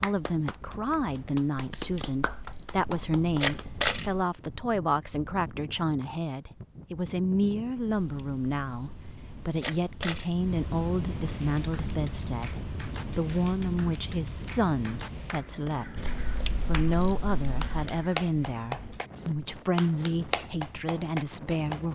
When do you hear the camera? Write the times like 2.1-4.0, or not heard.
1.8-4.2, 7.8-10.3, 16.0-17.9.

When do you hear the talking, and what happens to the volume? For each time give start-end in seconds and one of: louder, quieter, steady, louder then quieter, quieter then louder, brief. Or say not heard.
0.0-21.9 steady.